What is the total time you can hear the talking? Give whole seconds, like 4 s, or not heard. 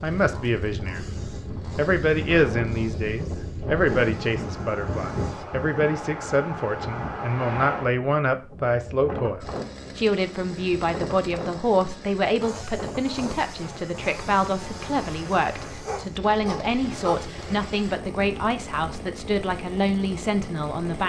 20 s.